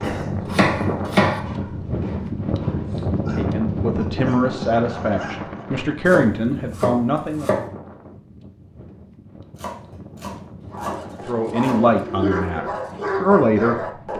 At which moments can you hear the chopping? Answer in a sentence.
You can hear the chopping from 0.0 to 1.4 s, from 6.0 to 7.7 s and from 9.6 to 12.0 s.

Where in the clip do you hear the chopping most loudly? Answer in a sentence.
The volume of the chopping peaks at 1 second.